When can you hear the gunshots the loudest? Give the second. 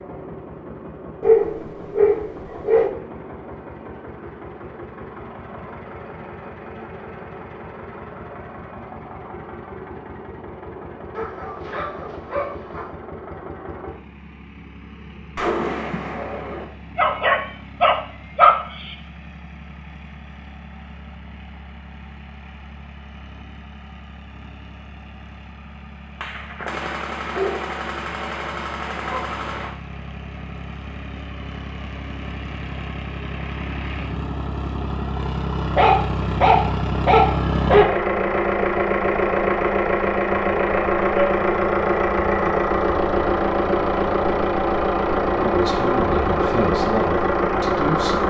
16 s.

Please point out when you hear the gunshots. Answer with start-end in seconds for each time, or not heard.
15.3-16.6, 26.2-29.8.